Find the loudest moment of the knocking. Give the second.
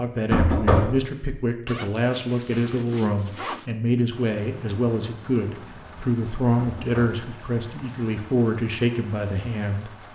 1 s.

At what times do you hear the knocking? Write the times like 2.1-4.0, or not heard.
0.3-1.0, 6.5-7.2.